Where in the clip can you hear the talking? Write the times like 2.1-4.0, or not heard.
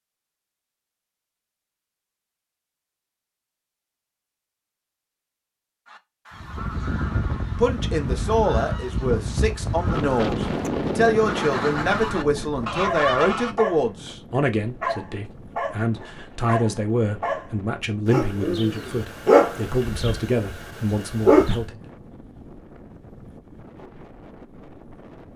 7.5-21.9.